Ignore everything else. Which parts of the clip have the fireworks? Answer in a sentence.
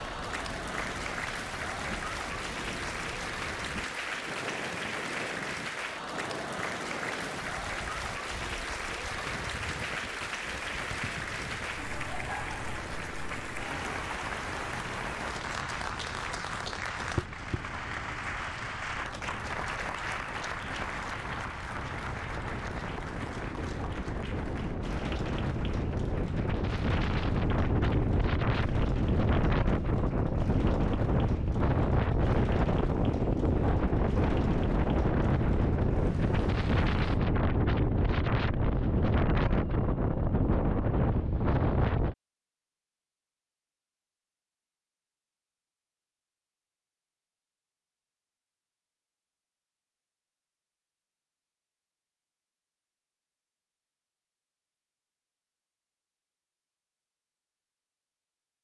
You can't hear the fireworks here.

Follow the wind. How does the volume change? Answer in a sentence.
The volume of the wind goes up.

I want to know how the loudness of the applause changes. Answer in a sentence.
The volume of the applause goes down.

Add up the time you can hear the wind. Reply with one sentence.
You can hear the wind for 42 seconds altogether.